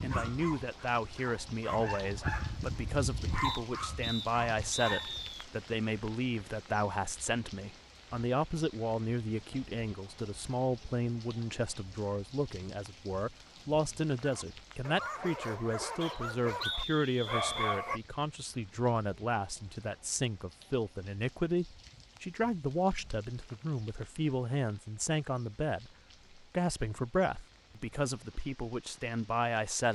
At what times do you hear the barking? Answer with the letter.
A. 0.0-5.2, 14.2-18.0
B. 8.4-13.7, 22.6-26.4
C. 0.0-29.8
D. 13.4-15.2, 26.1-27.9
A.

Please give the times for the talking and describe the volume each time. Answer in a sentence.
You can hear the talking from 0.0 to 29.8 s, at a steady volume.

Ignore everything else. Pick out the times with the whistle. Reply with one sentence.
The whistle can be heard from 3.4 to 5.2 s and from 16.0 to 17.8 s.